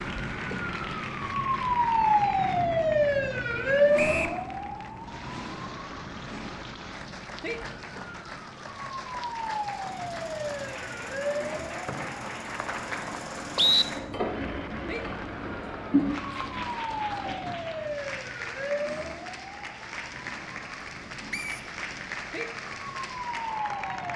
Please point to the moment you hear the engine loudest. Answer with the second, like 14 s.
16 s.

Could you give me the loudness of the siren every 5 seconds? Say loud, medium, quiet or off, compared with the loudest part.
loud, quiet, medium, medium, quiet.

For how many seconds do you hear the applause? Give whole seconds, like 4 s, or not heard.
24 s.